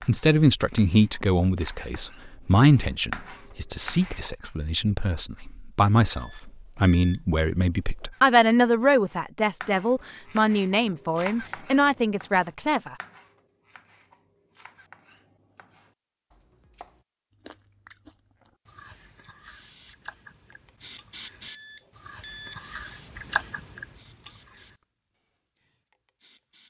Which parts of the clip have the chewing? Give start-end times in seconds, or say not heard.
17.3-24.9.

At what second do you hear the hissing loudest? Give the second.
21 s.